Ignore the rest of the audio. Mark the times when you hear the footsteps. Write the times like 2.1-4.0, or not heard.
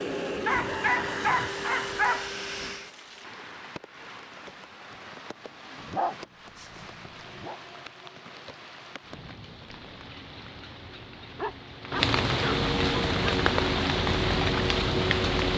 not heard.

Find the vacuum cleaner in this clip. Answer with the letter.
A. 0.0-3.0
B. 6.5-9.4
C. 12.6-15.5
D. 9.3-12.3
A.